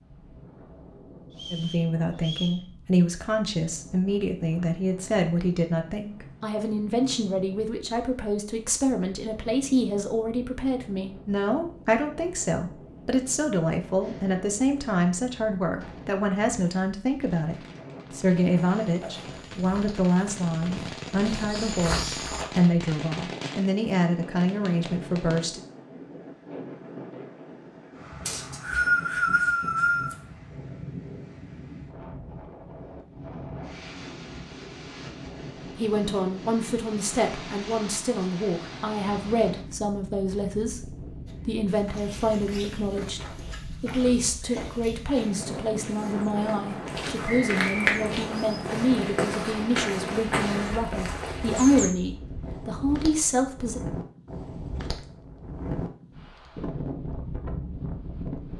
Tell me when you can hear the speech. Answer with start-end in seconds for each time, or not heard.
1.5-25.6, 35.8-53.8.